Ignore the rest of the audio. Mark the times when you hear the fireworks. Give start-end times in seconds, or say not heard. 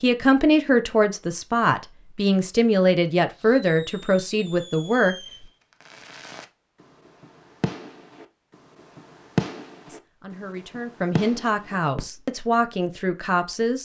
3.3-12.2.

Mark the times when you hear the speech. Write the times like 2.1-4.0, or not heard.
0.0-5.5, 9.8-13.7.